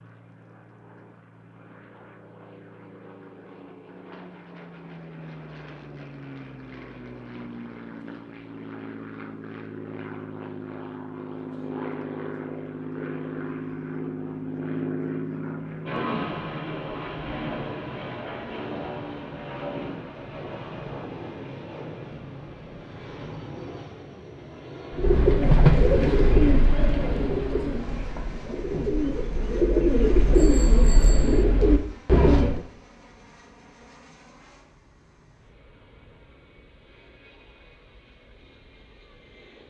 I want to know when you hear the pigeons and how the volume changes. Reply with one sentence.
The pigeons can be heard from 24.9 to 32.6 s, getting quieter then louder.